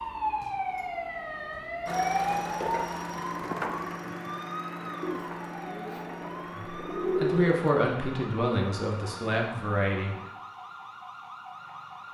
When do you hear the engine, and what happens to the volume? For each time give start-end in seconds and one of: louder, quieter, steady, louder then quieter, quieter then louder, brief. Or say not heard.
1.9-10.3 quieter.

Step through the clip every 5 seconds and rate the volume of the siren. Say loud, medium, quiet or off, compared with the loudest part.
loud, medium, medium.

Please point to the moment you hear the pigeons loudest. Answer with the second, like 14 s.
7 s.